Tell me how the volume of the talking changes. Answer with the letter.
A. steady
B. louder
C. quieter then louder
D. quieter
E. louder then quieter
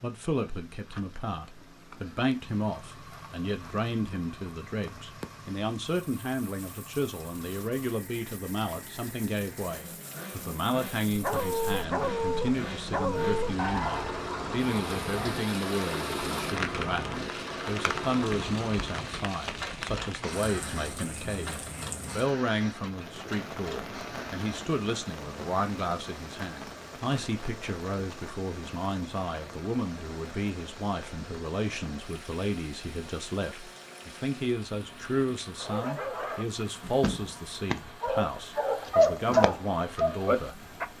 A.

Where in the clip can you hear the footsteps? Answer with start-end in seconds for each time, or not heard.
not heard.